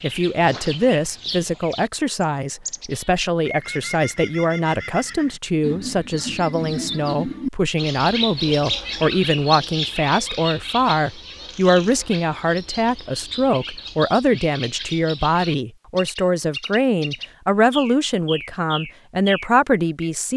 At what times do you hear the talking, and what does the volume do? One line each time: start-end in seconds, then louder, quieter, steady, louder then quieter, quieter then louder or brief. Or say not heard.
0.0-20.3 steady.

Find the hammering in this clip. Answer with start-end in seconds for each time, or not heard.
not heard.